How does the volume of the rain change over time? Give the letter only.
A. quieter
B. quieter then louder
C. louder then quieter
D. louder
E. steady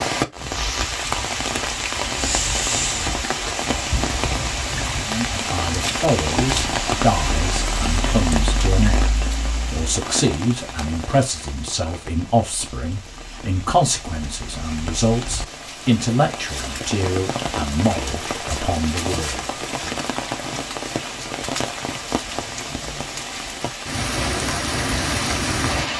B.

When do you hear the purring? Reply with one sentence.
You can't hear the purring here.